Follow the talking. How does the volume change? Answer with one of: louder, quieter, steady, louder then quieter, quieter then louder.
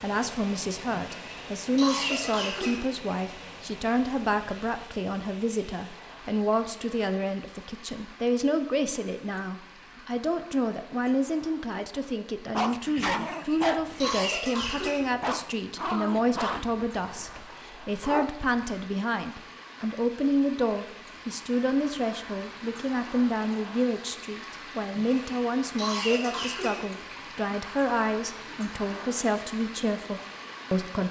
steady.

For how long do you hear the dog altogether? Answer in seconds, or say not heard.
6 s.